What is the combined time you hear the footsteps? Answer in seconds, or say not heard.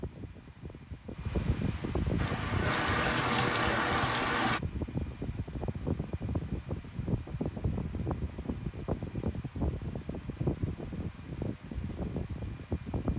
not heard.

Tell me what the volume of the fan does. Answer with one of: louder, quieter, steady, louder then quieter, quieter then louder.
steady.